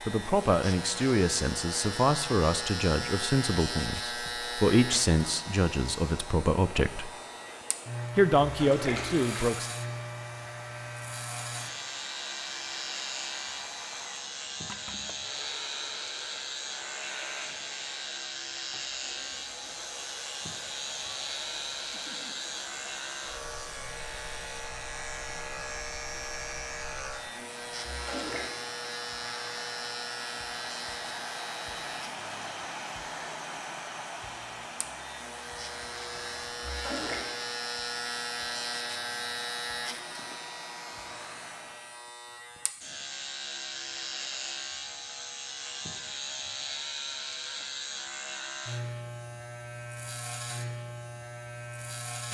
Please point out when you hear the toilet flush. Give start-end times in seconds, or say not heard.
8.4-9.5, 27.9-28.5, 36.6-37.2.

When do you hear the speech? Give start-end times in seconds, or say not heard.
0.1-7.1, 8.2-9.7.